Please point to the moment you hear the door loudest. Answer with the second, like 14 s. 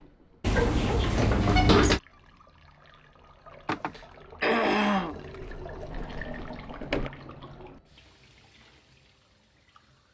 2 s.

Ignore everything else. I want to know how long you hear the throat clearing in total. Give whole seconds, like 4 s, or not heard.
2 s.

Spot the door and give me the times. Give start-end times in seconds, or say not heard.
0.4-2.0, 5.4-7.1.